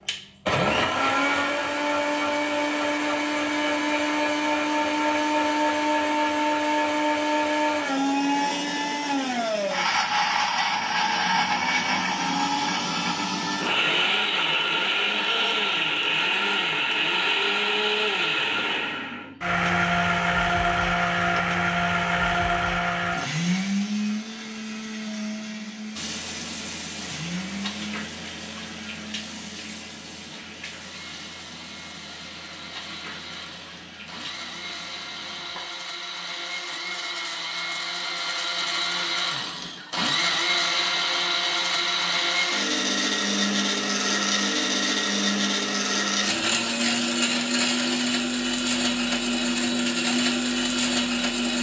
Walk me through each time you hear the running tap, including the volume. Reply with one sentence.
You can hear the running tap from 25.9 to 35.9 s, getting quieter.